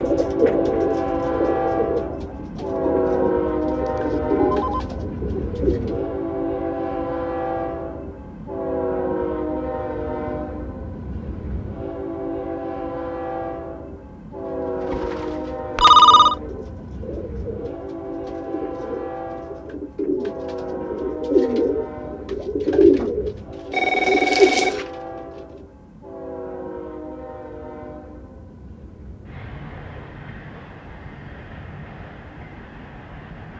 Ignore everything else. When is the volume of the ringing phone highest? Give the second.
16 s.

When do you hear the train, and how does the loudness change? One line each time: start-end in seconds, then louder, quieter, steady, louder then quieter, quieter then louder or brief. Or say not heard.
0.0-33.5 quieter.